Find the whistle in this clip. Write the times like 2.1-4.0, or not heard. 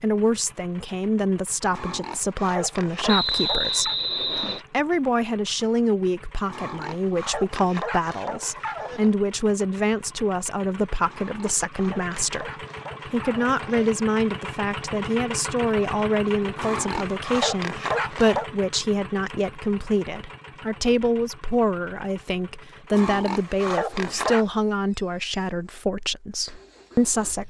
3.0-4.6.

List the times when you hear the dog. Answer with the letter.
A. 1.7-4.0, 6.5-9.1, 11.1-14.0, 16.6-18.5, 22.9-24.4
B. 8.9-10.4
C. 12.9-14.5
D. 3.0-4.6
A.